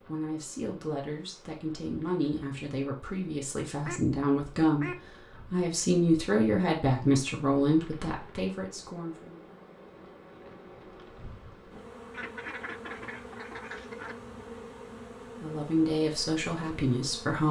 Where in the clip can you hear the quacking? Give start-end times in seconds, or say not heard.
3.9-5.2, 12.1-14.2.